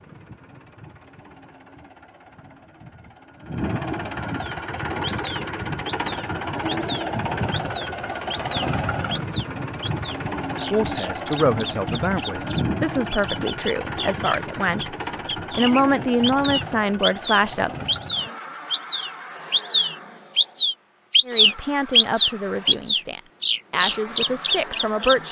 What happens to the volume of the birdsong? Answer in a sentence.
The loudness of the birdsong goes up.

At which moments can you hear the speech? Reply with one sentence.
You can hear the speech from 10.7 to 17.9 s and from 21.2 to 25.2 s.